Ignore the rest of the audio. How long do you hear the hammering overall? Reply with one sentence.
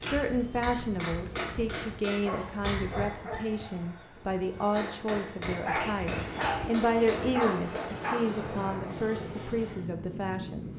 The hammering can be heard for 6 seconds in total.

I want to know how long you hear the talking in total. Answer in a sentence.
The talking can be heard for 11 seconds in total.